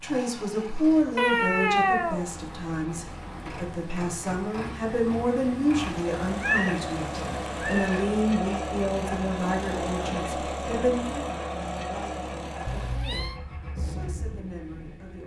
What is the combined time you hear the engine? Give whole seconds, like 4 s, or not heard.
15 s.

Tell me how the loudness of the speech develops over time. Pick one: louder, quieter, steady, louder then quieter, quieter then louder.
quieter.